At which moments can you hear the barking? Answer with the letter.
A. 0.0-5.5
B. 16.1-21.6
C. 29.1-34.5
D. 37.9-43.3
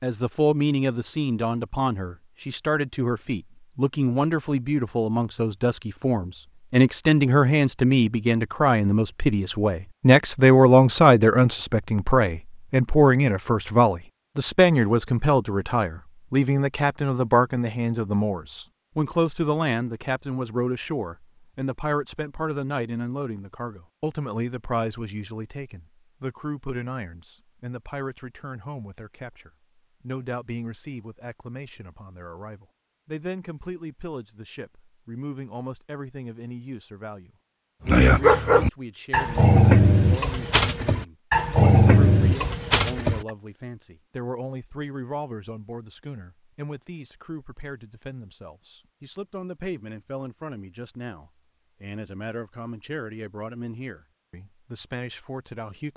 D.